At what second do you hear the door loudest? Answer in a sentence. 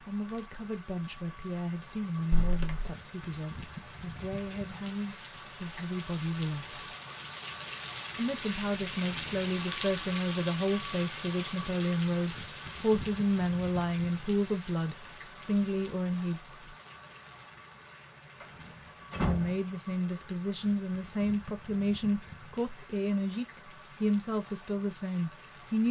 The volume of the door peaks at 19 seconds.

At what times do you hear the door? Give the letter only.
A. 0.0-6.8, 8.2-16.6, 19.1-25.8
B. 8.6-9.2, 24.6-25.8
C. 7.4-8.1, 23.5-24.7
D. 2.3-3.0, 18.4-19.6
D.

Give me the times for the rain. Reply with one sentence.
The rain can be heard from 0.0 to 25.8 s.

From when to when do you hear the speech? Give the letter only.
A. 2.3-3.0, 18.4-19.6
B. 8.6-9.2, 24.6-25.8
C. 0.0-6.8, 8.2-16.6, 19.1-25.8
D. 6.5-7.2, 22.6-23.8
C.